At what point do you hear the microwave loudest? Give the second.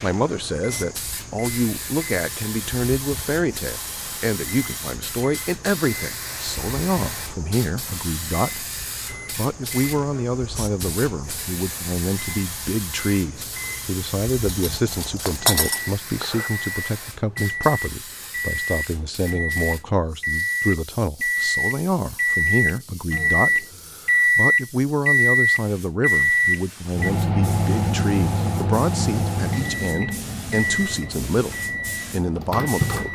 25 s.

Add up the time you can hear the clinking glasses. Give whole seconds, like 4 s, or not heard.
2 s.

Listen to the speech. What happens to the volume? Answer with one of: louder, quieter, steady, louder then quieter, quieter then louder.
steady.